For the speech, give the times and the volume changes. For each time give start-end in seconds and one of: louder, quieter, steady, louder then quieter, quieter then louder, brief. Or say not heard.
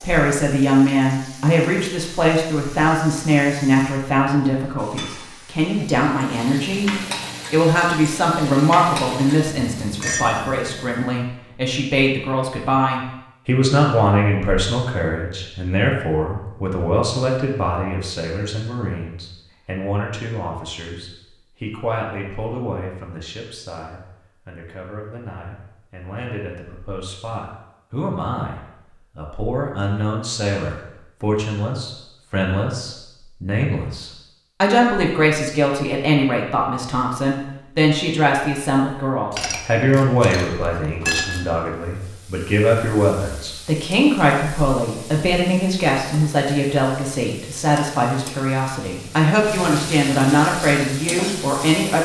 0.0-51.9 quieter then louder.